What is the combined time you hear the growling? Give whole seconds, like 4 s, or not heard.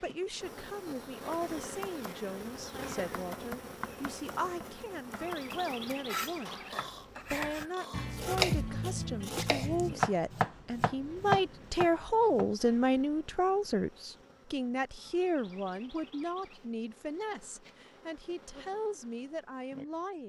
2 s.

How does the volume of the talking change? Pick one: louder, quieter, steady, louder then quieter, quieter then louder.
louder then quieter.